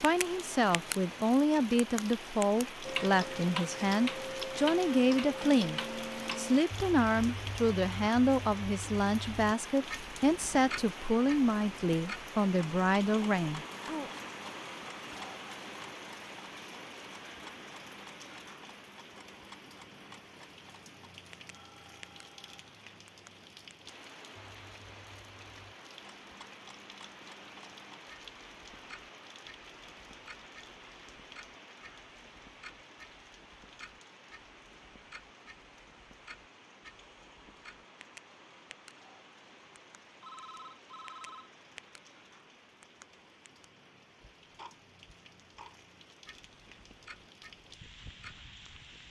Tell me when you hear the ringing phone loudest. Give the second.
41 s.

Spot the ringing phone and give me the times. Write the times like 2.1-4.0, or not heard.
21.5-22.6, 40.2-41.5.